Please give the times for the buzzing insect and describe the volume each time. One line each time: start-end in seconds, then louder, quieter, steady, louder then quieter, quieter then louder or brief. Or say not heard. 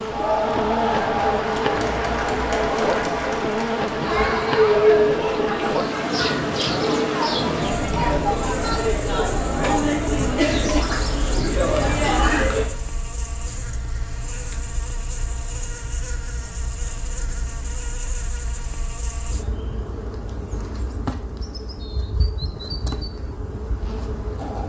0.0-24.6 quieter.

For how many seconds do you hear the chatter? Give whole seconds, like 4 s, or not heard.
13 s.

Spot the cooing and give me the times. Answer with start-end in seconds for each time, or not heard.
10.4-12.5.